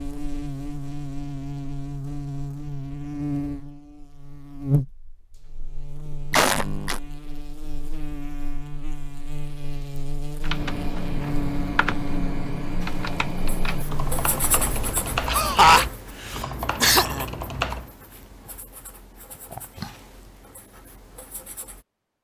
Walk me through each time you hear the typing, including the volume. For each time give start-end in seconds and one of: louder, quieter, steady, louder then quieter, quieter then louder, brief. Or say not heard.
10.4-17.9 steady.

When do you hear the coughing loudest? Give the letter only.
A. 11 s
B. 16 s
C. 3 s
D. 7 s
B.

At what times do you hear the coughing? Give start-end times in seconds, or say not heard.
6.3-7.0, 15.2-17.2.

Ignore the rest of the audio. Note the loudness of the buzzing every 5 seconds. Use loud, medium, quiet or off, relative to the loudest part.
loud, medium, loud, off, off.